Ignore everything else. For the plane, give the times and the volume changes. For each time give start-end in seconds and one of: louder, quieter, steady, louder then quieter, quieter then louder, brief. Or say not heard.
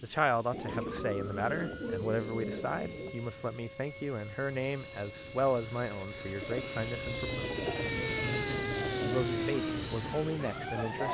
0.0-11.0 louder.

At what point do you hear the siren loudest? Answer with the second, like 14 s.
9 s.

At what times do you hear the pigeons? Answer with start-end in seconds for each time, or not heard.
0.5-3.1, 6.4-9.2.